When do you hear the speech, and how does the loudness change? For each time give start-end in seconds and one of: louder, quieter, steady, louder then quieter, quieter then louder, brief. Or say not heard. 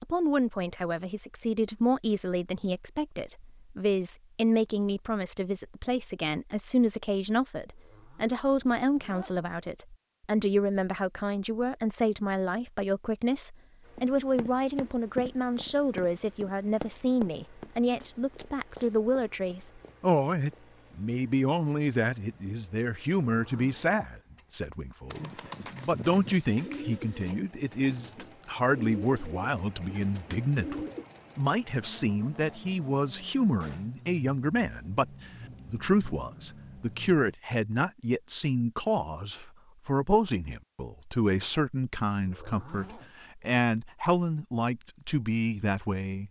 0.0-46.2 steady.